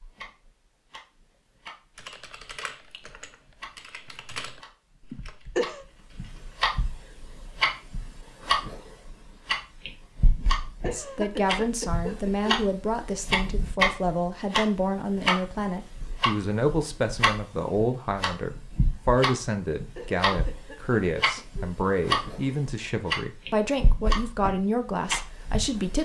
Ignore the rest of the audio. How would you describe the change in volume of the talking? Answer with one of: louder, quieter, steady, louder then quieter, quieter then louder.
steady.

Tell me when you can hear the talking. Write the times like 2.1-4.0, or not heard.
10.9-25.9.